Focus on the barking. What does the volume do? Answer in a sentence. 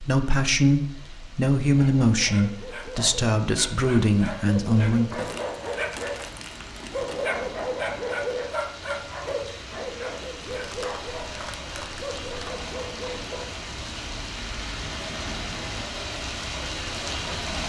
The volume of the barking goes up, then down.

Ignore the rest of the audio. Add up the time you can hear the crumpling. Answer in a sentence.
You can hear the crumpling for 4 seconds altogether.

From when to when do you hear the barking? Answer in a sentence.
You can hear the barking from 1.7 to 13.5 s.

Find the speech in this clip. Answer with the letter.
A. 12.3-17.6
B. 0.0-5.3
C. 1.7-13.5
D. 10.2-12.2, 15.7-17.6
B.